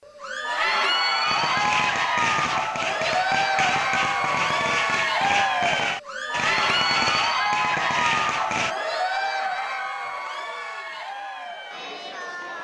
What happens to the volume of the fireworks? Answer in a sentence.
The loudness of the fireworks stays about the same.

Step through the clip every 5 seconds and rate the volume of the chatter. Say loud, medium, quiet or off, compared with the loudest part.
loud, loud, medium.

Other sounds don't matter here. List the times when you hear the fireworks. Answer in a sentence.
The fireworks can be heard from 1.2 to 8.8 s.